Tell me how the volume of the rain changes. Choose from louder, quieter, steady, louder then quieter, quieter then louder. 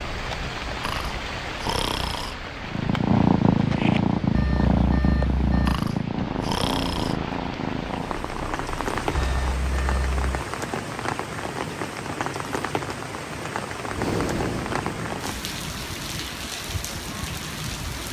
quieter then louder.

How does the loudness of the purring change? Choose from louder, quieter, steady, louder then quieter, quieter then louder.
quieter.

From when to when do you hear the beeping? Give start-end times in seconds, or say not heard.
4.3-5.8, 9.2-10.4.